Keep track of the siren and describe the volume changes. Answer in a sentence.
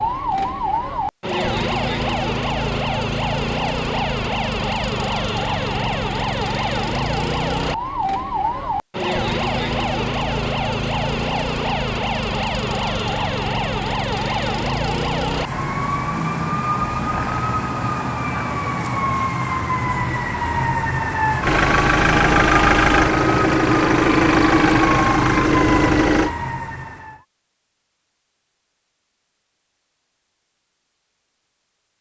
The loudness of the siren stays about the same.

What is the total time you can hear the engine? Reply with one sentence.
The engine can be heard for 5 seconds in total.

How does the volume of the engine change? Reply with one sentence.
The loudness of the engine stays about the same.